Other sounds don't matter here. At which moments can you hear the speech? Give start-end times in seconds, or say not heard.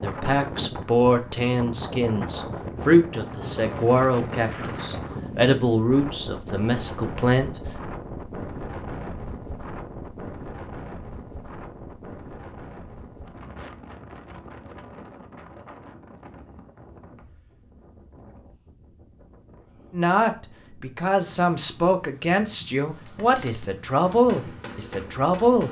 0.0-7.5, 19.9-25.6.